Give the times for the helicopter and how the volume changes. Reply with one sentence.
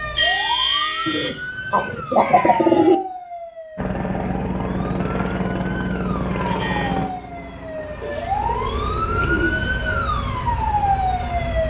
You can hear the helicopter from 3.8 to 11.6 s, getting quieter.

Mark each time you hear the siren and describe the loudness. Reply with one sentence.
You can hear the siren from 0.0 to 11.6 s, getting quieter then louder.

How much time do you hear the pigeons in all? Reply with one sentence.
The pigeons can be heard for 4 seconds in total.